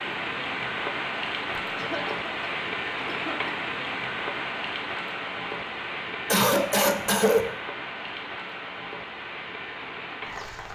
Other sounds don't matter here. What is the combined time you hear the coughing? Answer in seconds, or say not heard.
3 s.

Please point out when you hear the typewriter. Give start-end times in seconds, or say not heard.
not heard.